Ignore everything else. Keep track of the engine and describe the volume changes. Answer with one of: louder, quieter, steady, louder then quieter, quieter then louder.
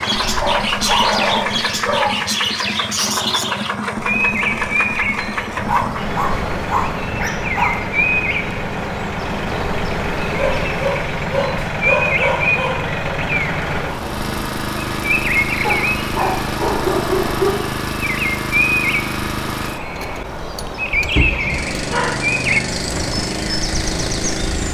steady.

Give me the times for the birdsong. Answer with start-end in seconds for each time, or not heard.
0.0-24.7.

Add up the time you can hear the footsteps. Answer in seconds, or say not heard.
not heard.